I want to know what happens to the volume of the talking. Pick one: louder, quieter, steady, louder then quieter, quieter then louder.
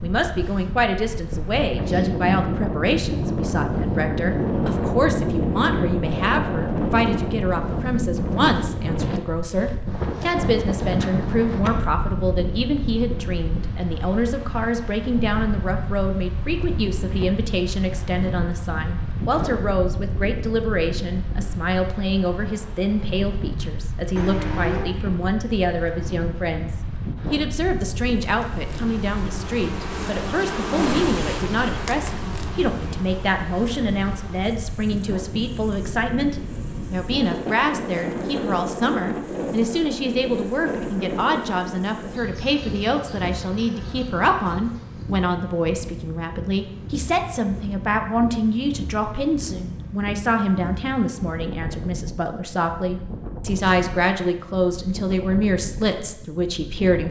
steady.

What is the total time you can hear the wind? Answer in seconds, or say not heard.
57 s.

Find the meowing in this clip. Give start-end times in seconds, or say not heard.
24.1-25.0.